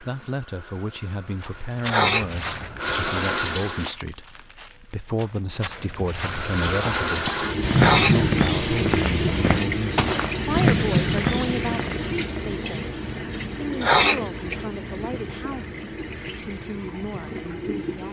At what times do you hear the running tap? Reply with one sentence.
The running tap can be heard from 0.0 to 4.0 s and from 6.2 to 18.0 s.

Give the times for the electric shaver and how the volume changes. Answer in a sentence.
The electric shaver can't be heard in this clip.